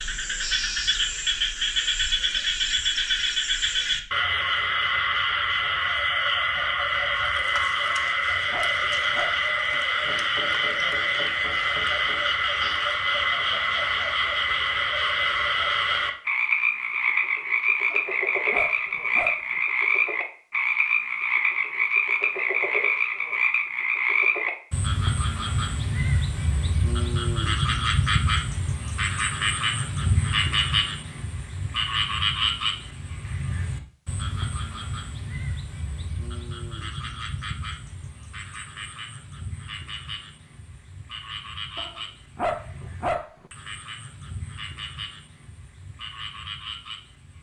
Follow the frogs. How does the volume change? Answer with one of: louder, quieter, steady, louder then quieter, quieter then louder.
quieter.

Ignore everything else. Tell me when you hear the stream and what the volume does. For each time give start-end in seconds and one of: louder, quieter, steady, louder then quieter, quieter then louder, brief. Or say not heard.
not heard.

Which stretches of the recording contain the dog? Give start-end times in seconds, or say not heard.
7.9-9.4, 17.9-19.6, 41.8-43.5.